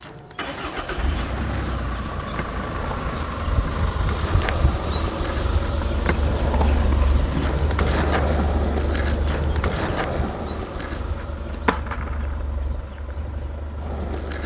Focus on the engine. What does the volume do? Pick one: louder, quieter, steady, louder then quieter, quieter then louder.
quieter.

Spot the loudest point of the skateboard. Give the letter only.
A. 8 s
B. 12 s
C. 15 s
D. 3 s
A.